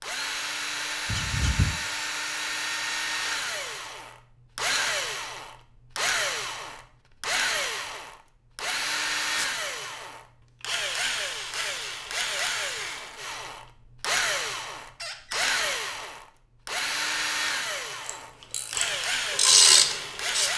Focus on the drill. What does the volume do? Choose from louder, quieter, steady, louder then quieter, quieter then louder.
steady.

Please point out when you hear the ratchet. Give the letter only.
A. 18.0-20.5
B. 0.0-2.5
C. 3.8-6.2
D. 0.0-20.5
A.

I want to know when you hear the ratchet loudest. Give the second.
20 s.